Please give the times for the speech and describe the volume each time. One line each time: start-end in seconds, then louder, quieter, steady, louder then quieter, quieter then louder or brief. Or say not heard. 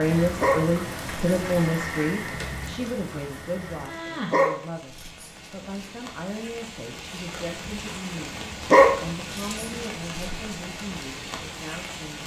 0.0-12.2 quieter.